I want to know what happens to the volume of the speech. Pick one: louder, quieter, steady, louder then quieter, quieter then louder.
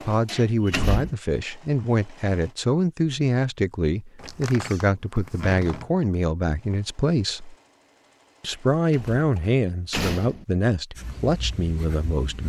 steady.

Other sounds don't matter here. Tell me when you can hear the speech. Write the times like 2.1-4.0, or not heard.
0.0-7.5, 8.4-12.4.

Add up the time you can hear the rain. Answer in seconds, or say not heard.
not heard.